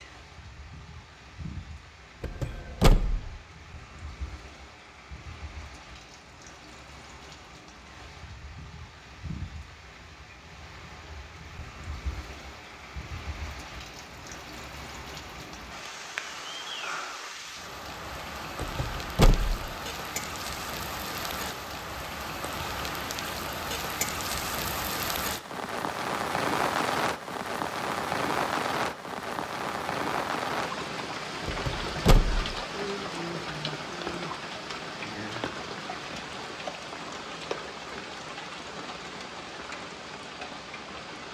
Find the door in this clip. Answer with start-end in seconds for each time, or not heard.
2.2-3.3, 18.6-19.7, 31.4-32.5.